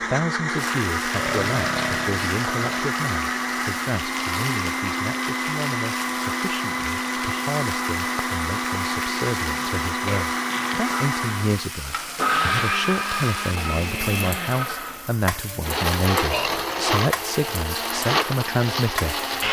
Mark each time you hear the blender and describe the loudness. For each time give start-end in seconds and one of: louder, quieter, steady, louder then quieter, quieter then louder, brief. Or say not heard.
0.0-19.4 steady.